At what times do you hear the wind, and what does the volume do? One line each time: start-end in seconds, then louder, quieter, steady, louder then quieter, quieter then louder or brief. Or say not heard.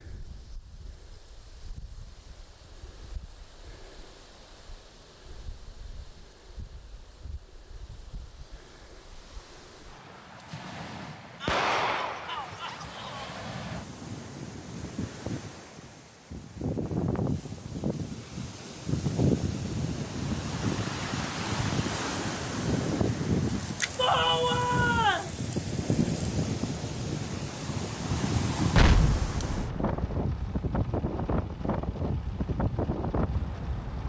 0.0-34.0 louder.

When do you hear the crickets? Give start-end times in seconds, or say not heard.
not heard.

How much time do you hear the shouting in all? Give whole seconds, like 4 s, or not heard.
3 s.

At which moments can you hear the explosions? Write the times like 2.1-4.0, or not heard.
11.4-12.4, 28.8-30.2.